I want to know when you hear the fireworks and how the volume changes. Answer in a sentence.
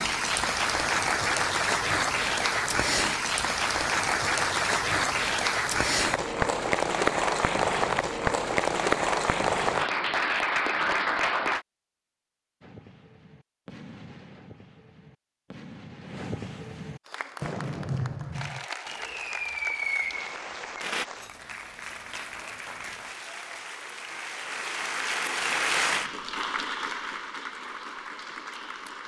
You can hear the fireworks from 12.6 to 21.1 s, getting louder.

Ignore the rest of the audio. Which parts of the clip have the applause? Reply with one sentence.
You can hear the applause from 0.0 to 11.7 s and from 17.1 to 29.0 s.